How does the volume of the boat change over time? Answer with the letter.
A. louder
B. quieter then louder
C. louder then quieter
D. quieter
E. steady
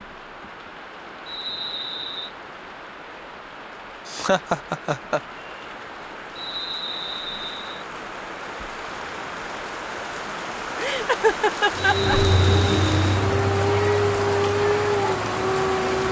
D.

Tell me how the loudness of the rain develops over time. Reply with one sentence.
The loudness of the rain goes up.